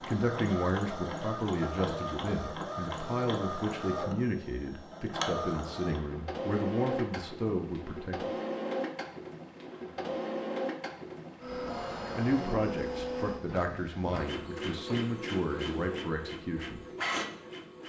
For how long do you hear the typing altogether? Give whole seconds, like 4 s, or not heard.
not heard.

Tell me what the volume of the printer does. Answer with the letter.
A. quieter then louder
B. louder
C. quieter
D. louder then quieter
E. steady
E.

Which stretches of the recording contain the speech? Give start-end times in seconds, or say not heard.
0.0-8.3, 12.2-16.8.